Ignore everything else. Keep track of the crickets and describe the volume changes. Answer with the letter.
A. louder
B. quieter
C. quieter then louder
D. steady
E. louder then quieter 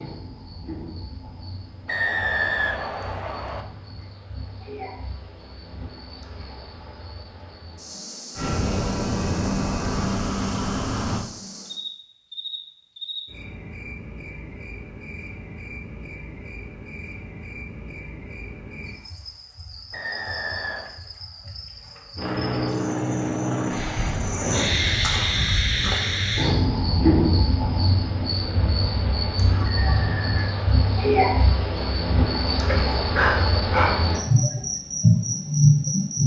A.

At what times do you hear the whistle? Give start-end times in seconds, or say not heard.
1.9-3.6, 19.9-20.9, 29.6-30.6.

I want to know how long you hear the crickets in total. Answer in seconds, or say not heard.
36 s.